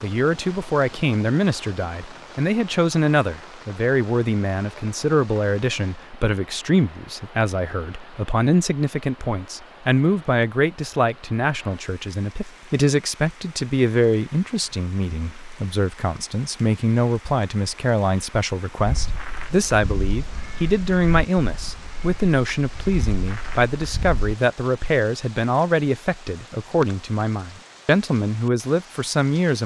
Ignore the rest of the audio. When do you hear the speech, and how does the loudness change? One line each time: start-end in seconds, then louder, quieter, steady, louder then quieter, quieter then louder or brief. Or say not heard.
0.0-29.6 steady.